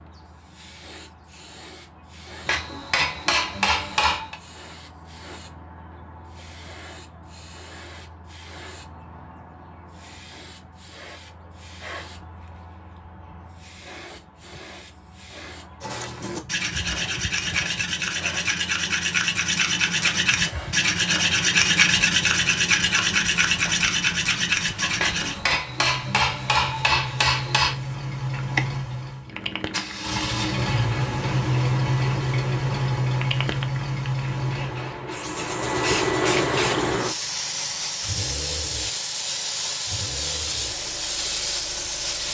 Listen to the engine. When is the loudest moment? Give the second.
32 s.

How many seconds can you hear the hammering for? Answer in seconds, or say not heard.
5 s.